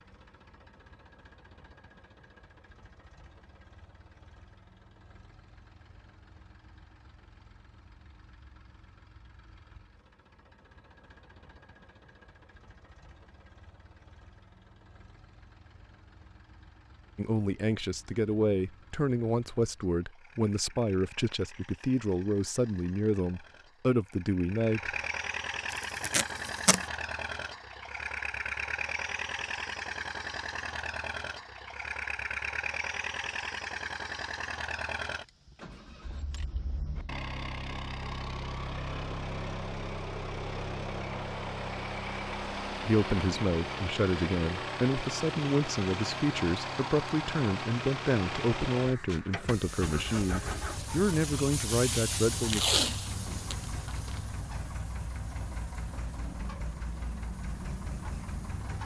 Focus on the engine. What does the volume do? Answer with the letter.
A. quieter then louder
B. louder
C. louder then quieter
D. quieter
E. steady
B.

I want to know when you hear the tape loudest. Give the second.
53 s.